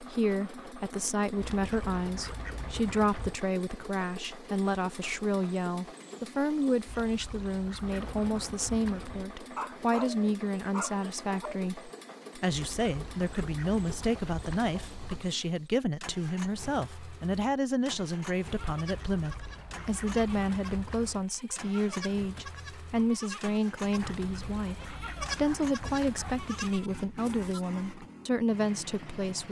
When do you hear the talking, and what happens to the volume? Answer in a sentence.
You can hear the talking from 0.0 to 29.4 s, at a steady volume.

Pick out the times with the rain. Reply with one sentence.
You can't hear the rain here.